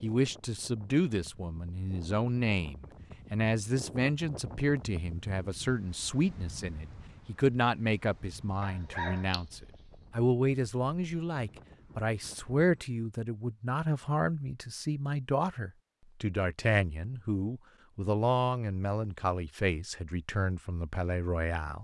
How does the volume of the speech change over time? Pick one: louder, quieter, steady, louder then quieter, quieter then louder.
steady.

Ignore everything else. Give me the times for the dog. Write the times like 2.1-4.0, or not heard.
8.6-9.9.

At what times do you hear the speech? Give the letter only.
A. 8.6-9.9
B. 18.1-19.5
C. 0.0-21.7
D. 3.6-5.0
C.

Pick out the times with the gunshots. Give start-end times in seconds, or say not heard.
not heard.